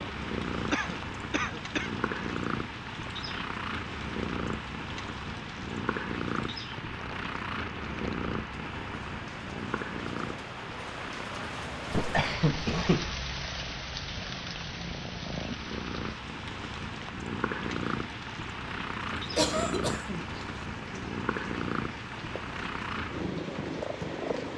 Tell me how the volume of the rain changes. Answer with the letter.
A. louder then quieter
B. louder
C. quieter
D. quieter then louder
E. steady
A.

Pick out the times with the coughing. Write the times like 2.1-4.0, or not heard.
0.7-1.9, 11.9-13.2, 19.4-20.4.